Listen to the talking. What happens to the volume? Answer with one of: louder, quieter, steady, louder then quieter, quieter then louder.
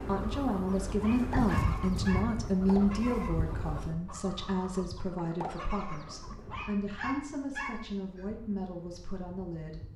quieter.